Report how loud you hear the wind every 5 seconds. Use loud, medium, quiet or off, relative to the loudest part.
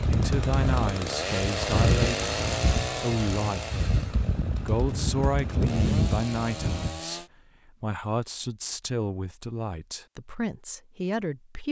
loud, loud, off.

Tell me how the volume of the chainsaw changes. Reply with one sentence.
The volume of the chainsaw goes down, then up.